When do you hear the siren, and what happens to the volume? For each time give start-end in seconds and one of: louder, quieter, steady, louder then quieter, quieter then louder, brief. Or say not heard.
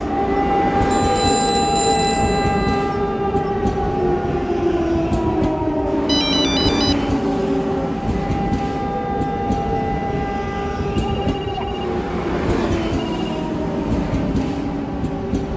0.0-15.5 quieter.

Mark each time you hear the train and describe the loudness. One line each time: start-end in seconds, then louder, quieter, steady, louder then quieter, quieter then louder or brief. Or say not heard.
0.0-15.5 steady.